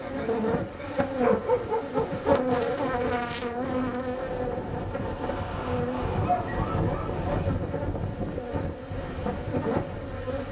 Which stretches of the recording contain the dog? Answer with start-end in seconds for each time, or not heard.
1.2-2.5, 6.0-7.5.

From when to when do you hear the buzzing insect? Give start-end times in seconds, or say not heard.
0.0-10.4.